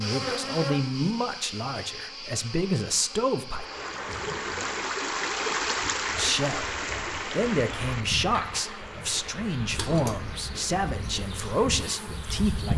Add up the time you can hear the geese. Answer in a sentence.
You can't hear the geese here.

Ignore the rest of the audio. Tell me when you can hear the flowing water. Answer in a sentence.
You can hear the flowing water from 3.5 to 12.7 s.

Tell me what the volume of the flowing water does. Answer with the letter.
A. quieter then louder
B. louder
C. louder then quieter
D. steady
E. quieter
E.